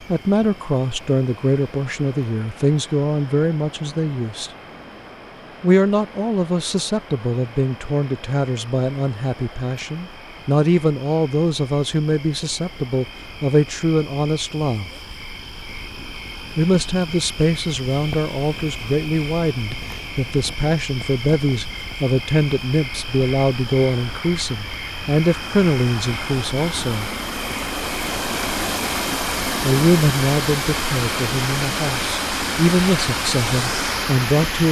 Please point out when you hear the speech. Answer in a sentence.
You can hear the speech from 0.1 to 4.5 s, from 5.6 to 15.1 s, from 16.6 to 27.1 s and from 29.6 to 34.6 s.